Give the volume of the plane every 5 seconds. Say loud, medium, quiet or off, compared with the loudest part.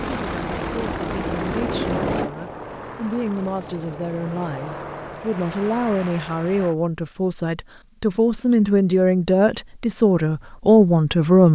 loud, medium, off.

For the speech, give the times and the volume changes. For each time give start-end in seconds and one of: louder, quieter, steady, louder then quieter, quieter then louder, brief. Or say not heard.
0.0-11.5 louder.